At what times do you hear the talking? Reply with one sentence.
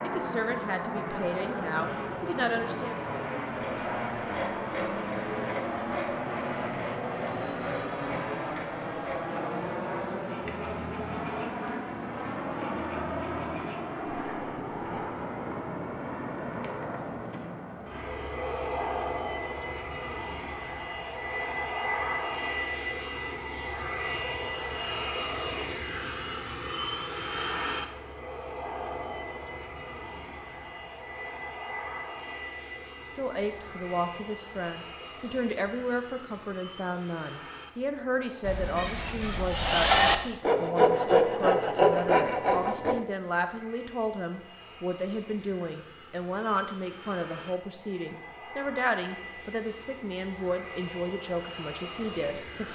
The talking can be heard from 0.0 to 3.0 s and from 33.0 to 52.6 s.